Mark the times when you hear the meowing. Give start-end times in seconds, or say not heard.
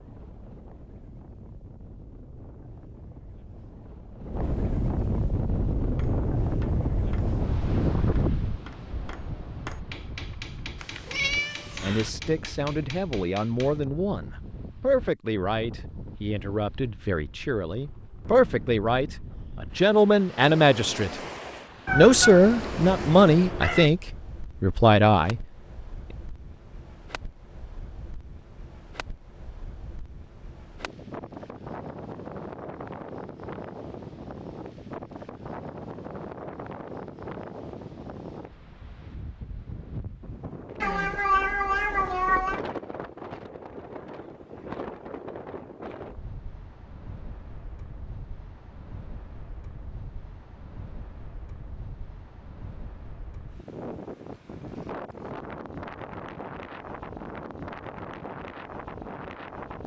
10.8-12.1, 21.9-23.9, 40.8-42.6.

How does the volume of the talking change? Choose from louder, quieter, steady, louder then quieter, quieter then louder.
louder.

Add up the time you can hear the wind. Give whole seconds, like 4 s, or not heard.
60 s.